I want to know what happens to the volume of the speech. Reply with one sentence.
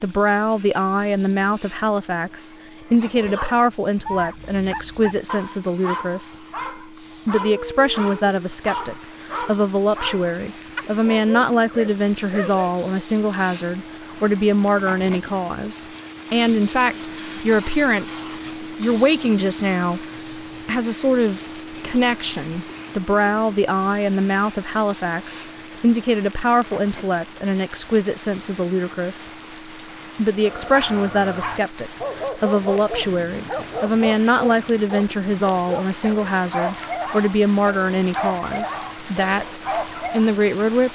The volume of the speech stays about the same.